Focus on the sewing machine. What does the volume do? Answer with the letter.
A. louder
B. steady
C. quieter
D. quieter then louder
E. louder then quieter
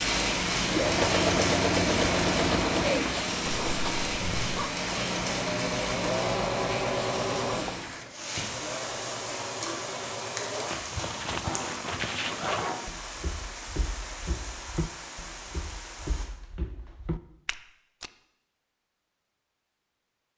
C.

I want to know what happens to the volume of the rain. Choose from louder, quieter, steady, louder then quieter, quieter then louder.
quieter.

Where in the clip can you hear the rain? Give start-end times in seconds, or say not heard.
0.0-16.2.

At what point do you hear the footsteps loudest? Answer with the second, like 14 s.
12 s.